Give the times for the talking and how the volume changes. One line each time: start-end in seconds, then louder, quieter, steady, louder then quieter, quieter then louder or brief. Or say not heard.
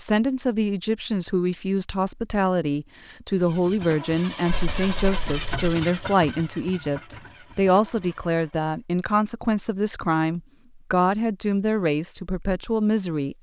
0.0-13.3 steady.